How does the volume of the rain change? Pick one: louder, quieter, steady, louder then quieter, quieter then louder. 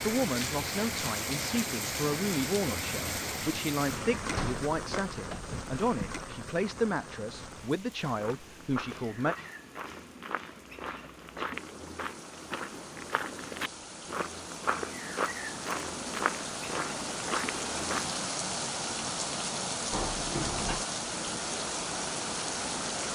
quieter then louder.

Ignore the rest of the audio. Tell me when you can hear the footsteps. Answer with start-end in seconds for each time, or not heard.
8.2-18.2.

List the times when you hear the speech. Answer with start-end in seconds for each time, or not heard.
0.0-9.3.